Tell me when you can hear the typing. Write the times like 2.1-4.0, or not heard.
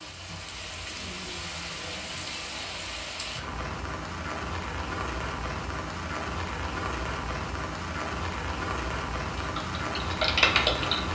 9.3-11.0.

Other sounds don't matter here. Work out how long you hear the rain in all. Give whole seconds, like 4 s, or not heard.
11 s.